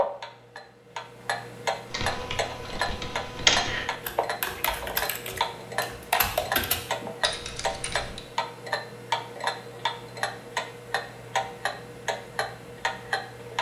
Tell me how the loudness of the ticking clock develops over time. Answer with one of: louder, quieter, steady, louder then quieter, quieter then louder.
steady.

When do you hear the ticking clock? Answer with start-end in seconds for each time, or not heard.
0.0-13.5.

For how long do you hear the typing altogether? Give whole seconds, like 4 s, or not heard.
6 s.